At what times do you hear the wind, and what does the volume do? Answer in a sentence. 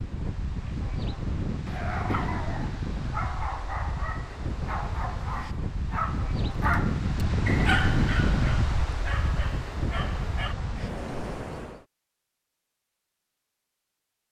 The wind can be heard from 0.0 to 11.8 s, getting louder then quieter.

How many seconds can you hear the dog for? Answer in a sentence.
The dog can be heard for 9 seconds in total.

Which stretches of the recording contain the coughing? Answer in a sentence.
The coughing can be heard from 1.6 to 2.5 s.